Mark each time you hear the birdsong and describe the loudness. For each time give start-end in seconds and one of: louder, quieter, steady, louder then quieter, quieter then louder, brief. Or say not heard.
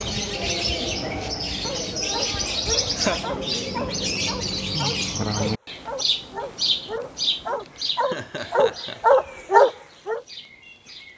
0.0-11.1 quieter.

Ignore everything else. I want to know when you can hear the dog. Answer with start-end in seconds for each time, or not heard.
1.6-10.2.